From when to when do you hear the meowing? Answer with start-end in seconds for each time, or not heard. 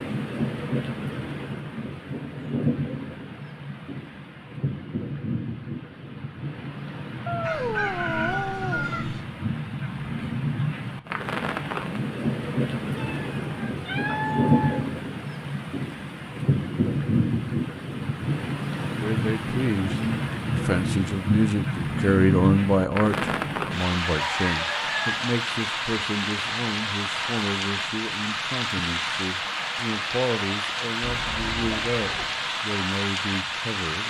7.2-8.9, 12.9-14.9, 31.0-32.4.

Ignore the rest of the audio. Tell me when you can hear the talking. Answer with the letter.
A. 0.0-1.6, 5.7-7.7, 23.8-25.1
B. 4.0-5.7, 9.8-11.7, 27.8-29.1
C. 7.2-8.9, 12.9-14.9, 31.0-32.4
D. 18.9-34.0
D.